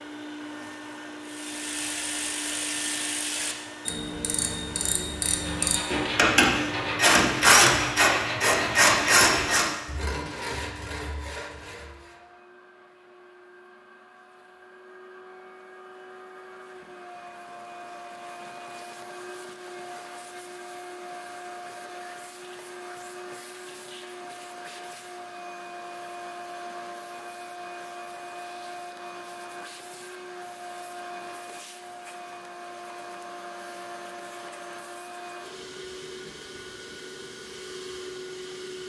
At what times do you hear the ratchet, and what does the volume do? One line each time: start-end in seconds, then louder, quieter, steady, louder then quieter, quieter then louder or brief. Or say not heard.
1.2-9.7 louder.